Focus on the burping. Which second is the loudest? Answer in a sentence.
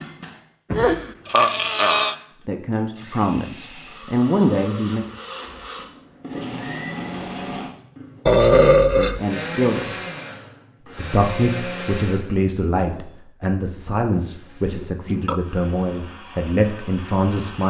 The volume of the burping peaks at 9 seconds.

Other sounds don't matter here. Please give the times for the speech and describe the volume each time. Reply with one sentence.
You can hear the speech briefly from 2.5 to 5.0 s; briefly from 8.8 to 9.9 s; and from 10.9 to 17.6 s, at a steady volume.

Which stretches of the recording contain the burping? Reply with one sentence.
You can hear the burping from 0.7 to 2.1 s, from 8.2 to 9.2 s and from 14.7 to 15.4 s.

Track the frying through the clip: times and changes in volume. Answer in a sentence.
The frying can't be heard in this clip.